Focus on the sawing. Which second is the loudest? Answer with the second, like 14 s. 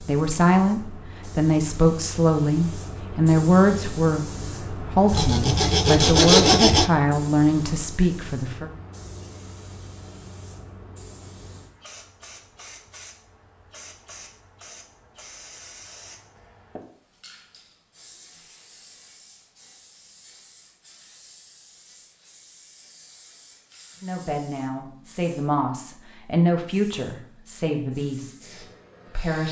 6 s.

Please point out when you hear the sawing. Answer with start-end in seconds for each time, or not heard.
5.1-6.9.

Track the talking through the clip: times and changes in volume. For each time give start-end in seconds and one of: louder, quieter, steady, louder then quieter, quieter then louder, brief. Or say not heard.
0.0-8.7 steady
24.0-29.4 louder then quieter.